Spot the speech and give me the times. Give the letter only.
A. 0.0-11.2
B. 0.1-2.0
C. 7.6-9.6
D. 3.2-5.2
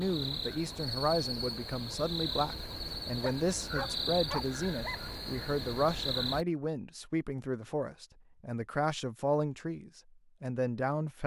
A.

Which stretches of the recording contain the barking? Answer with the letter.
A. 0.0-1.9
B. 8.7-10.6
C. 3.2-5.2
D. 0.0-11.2
C.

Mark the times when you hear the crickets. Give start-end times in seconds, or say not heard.
0.0-6.5.